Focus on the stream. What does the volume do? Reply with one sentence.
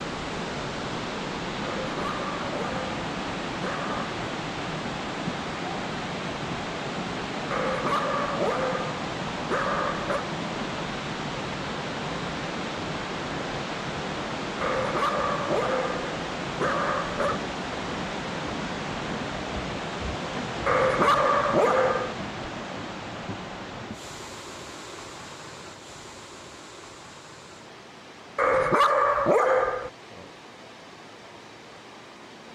The volume of the stream goes down.